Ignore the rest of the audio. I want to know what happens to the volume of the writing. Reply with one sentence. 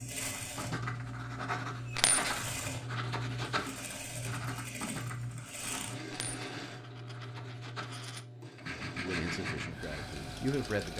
The loudness of the writing goes down, then up.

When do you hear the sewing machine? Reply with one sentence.
The sewing machine can be heard from 0.0 to 10.9 s.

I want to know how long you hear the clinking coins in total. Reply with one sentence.
The clinking coins can be heard for 3 seconds in total.